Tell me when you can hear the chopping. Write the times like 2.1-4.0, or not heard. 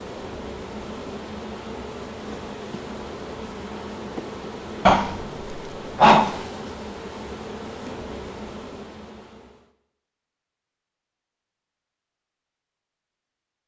not heard.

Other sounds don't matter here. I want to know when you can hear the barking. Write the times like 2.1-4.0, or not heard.
4.8-6.4.